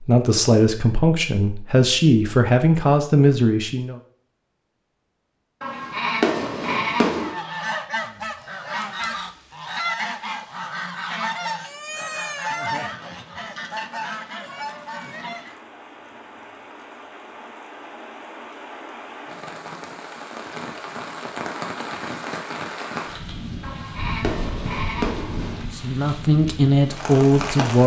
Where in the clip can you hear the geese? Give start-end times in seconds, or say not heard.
7.2-15.6.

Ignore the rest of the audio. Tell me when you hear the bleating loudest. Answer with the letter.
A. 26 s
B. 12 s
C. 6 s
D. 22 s
C.